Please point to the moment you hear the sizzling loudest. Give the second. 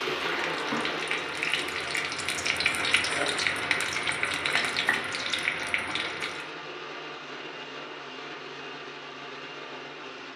3 s.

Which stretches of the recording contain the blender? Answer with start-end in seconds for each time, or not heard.
0.0-10.3.